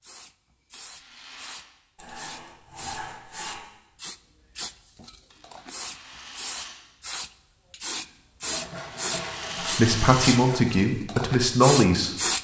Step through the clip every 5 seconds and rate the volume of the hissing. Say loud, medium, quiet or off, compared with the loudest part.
quiet, medium, loud.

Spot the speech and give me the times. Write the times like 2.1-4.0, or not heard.
9.6-12.2.